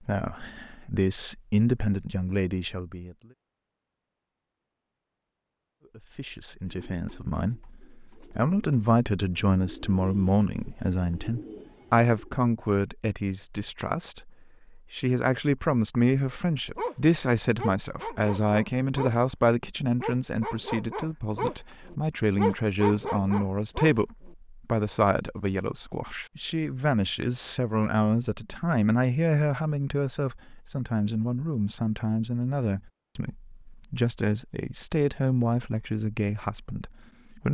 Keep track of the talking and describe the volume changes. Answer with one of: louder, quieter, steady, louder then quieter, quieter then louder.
steady.